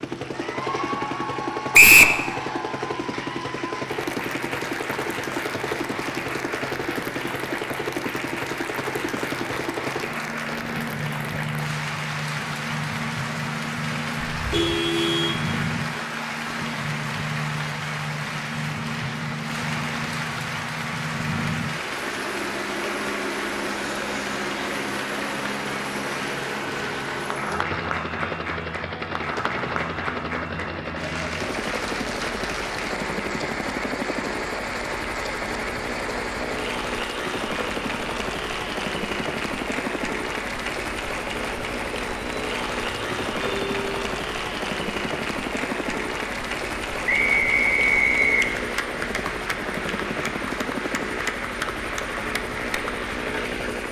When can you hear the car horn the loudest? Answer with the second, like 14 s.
15 s.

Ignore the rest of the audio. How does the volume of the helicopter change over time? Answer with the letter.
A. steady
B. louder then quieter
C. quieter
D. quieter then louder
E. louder
A.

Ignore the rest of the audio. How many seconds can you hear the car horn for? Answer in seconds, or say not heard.
3 s.